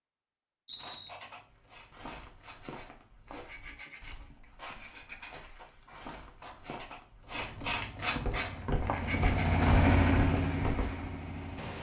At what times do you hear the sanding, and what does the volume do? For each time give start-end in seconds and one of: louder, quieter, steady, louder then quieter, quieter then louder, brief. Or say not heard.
0.7-9.6 louder.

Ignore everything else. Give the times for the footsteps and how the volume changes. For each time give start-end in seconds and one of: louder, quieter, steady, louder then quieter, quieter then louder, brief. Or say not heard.
1.7-11.1 louder.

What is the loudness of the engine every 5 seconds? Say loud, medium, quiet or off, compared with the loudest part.
off, loud, loud.